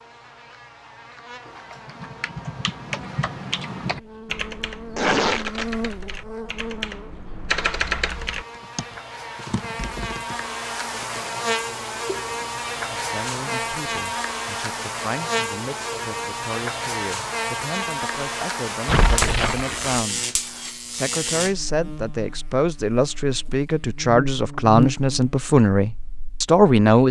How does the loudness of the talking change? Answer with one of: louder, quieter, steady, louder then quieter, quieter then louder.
louder.